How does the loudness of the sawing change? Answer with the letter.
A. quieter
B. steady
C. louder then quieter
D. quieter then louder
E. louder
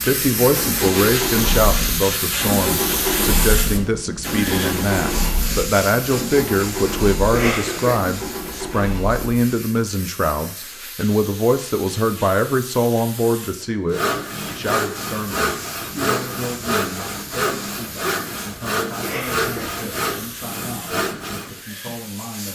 B.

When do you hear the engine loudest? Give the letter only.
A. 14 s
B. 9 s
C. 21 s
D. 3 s
D.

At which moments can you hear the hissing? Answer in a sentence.
The hissing can be heard from 0.0 to 22.4 s.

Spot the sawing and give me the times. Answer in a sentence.
You can hear the sawing from 13.8 to 21.6 s.